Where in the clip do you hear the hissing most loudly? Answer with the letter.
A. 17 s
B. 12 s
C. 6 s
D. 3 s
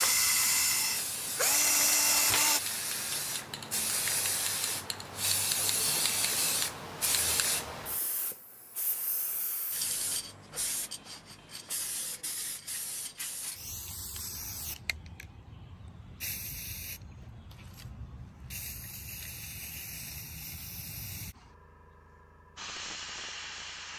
C.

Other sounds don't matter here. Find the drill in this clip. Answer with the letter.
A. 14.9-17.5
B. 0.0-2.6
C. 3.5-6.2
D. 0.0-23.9
B.